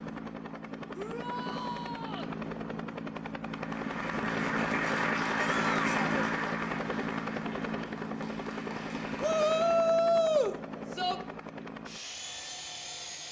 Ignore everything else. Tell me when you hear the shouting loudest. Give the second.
10 s.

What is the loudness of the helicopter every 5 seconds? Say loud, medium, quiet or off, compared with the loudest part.
loud, loud, medium.